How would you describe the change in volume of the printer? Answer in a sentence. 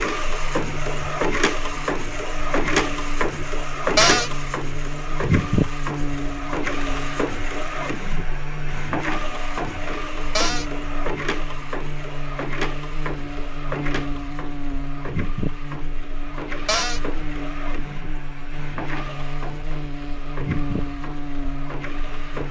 The volume of the printer goes down.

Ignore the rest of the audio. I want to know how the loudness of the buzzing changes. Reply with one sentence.
The volume of the buzzing stays about the same.